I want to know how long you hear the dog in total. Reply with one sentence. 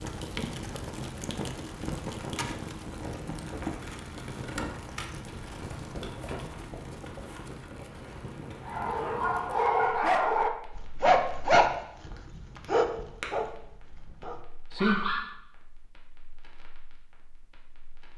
The dog can be heard for 7 seconds in total.